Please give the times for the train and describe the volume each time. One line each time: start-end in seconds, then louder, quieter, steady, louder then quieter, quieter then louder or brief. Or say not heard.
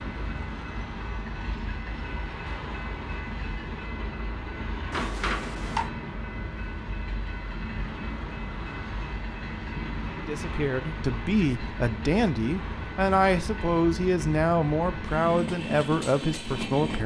0.0-17.0 steady.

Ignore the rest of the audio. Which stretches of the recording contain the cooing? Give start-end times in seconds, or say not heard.
not heard.